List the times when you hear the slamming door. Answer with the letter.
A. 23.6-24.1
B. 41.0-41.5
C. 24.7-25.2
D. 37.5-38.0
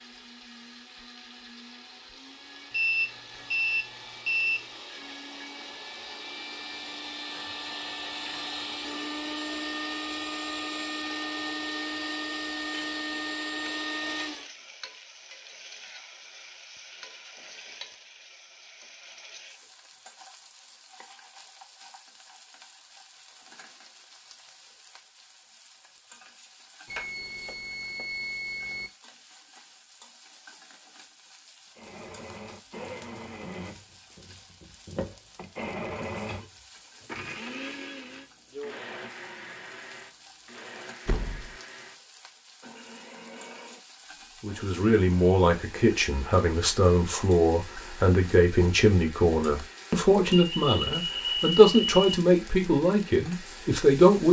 B.